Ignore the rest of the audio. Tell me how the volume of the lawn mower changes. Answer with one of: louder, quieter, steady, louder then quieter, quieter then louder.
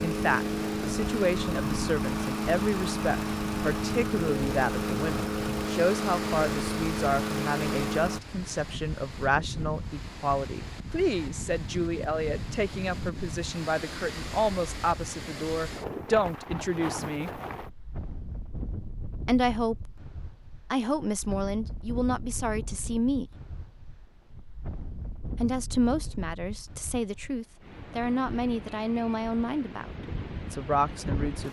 steady.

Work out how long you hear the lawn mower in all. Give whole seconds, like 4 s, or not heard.
8 s.